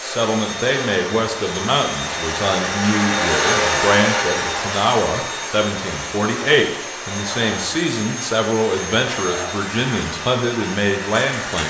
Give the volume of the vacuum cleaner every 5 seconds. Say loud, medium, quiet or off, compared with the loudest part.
loud, medium, medium.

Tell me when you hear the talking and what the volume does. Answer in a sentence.
The talking can be heard from 0.0 to 11.6 s, at a steady volume.